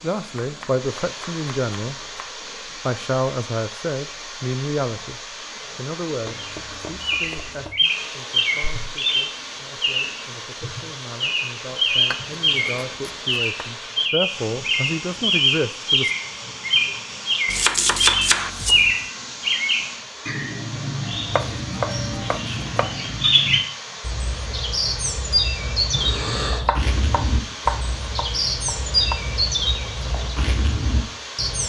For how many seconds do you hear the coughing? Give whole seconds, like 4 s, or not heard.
2 s.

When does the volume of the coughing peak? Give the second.
26 s.